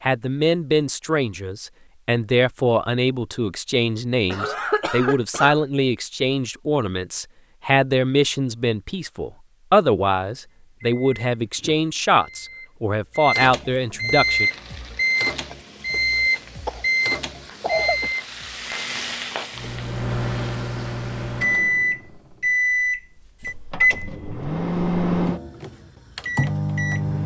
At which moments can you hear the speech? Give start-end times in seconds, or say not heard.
0.0-14.5.